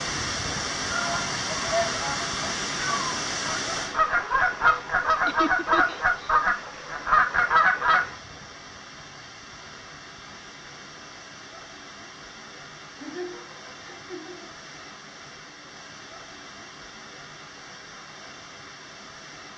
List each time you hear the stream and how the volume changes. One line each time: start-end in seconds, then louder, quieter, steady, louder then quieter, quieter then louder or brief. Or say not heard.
0.0-19.5 quieter.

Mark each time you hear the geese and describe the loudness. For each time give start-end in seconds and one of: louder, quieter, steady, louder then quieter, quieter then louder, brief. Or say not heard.
0.8-8.2 louder.